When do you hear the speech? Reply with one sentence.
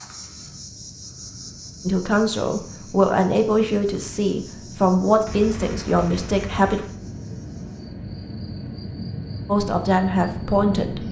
The speech can be heard from 1.9 to 6.8 s and from 9.4 to 11.0 s.